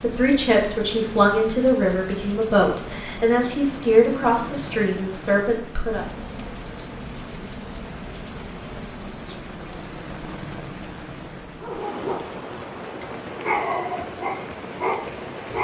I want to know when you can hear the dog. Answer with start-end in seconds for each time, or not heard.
11.6-15.5.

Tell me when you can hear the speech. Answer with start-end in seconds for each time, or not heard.
0.0-6.0.